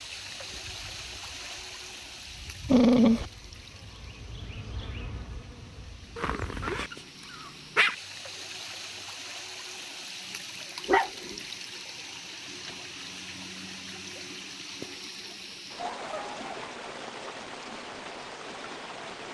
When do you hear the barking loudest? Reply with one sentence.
The volume of the barking peaks at 3 seconds.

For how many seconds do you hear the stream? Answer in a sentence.
You can hear the stream for 19 seconds altogether.